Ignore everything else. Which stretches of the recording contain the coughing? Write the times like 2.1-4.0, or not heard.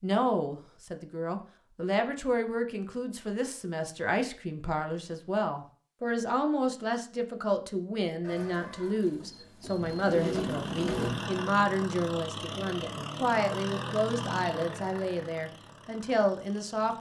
not heard.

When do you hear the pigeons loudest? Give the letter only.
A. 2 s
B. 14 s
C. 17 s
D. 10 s
D.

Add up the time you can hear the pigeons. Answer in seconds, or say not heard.
3 s.